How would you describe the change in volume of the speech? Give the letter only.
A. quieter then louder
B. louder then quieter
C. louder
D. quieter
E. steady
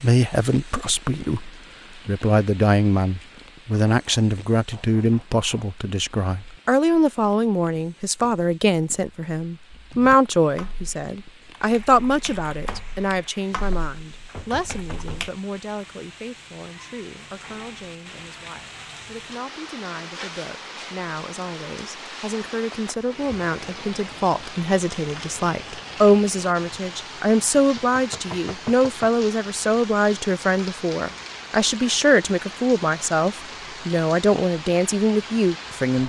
A.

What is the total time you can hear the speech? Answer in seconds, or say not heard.
36 s.